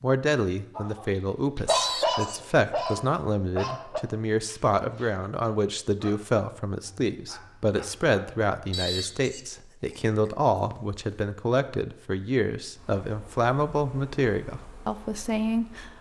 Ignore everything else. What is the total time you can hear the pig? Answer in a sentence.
The pig can be heard for 4 seconds in total.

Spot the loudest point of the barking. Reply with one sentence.
The volume of the barking peaks at 2 seconds.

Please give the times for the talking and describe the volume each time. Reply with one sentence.
You can hear the talking from 0.0 to 15.9 s, at a steady volume.